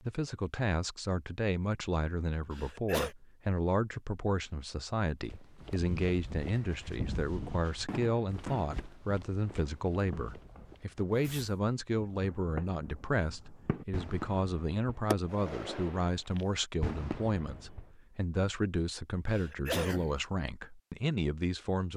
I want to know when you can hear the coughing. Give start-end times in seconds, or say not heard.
2.5-3.1, 19.2-20.1.